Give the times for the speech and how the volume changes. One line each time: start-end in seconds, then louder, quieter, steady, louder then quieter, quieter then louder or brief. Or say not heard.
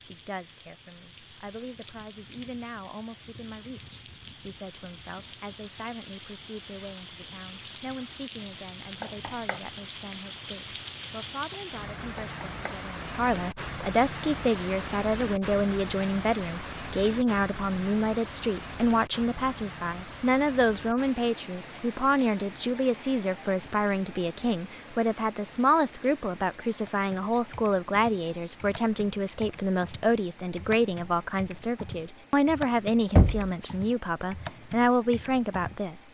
0.0-36.0 louder.